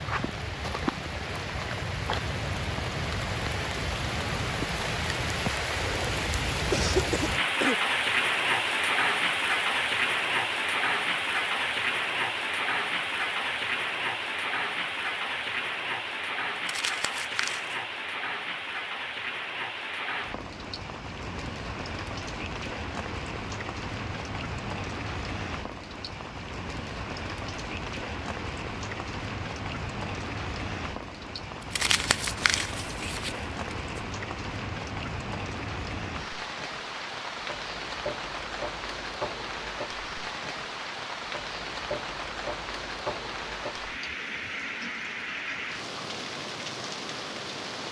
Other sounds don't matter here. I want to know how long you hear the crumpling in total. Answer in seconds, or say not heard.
3 s.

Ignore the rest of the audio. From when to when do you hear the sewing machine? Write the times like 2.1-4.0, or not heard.
not heard.